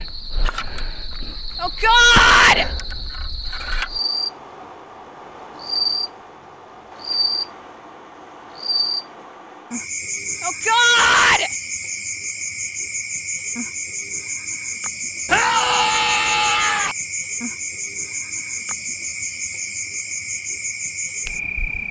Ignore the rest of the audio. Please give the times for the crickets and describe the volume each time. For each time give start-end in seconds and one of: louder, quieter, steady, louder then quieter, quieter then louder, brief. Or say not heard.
0.0-21.8 steady.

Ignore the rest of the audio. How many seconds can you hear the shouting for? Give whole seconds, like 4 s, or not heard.
4 s.